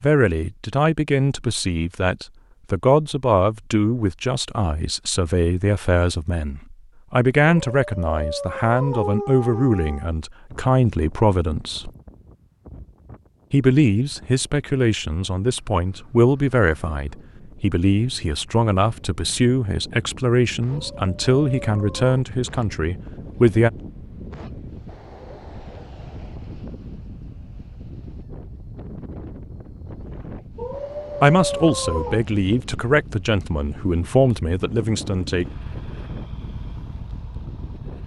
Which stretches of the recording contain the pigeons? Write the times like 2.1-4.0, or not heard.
not heard.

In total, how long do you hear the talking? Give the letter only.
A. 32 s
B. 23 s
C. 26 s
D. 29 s
C.